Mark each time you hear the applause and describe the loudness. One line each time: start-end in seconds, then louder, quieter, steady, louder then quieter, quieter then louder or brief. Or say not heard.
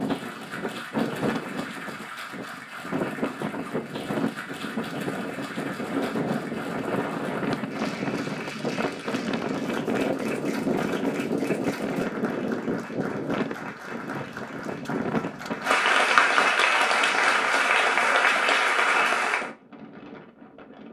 0.0-19.5 louder.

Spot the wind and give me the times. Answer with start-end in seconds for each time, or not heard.
0.0-20.8.